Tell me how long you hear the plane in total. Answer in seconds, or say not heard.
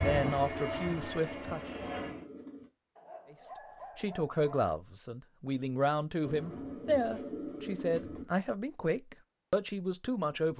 2 s.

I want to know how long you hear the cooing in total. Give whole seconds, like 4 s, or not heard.
4 s.